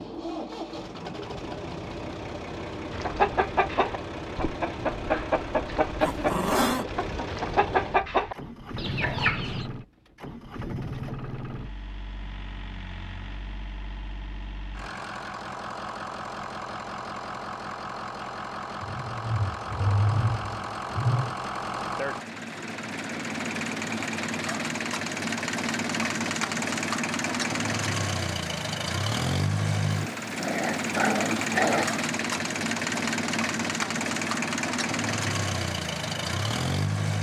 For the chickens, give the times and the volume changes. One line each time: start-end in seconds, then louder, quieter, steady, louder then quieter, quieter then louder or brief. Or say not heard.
2.9-9.7 steady.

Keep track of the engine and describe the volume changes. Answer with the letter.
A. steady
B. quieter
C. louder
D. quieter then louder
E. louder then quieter
C.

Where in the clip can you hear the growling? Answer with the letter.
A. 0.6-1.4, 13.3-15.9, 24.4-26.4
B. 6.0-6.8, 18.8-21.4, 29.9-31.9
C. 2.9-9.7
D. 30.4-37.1
B.